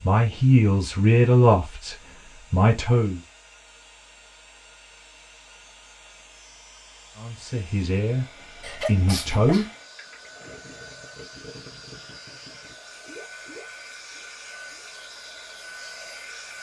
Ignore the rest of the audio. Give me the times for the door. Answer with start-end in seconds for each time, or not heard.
not heard.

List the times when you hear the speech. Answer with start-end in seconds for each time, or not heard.
0.0-3.2, 7.2-9.7.